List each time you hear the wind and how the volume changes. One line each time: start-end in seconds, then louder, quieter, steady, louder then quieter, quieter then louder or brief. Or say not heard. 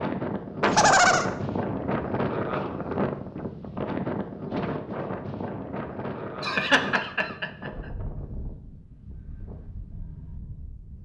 0.0-10.9 quieter.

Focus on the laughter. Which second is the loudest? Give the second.
1 s.